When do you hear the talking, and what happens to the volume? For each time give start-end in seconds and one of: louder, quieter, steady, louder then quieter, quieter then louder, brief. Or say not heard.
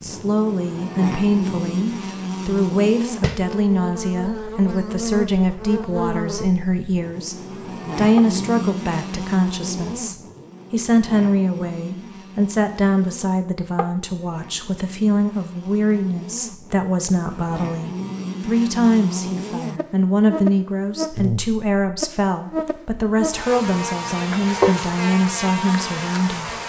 0.0-26.6 steady.